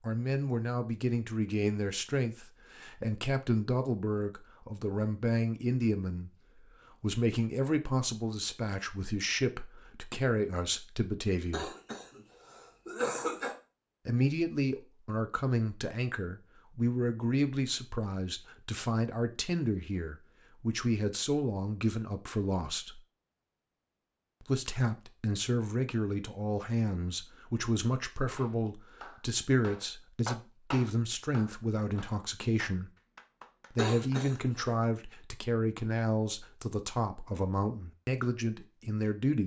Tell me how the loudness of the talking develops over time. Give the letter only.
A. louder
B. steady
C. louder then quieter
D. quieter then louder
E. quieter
B.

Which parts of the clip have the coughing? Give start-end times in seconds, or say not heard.
11.5-13.6, 33.8-34.5.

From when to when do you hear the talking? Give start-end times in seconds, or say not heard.
0.0-11.7, 14.1-23.0, 24.4-32.9, 33.7-39.4.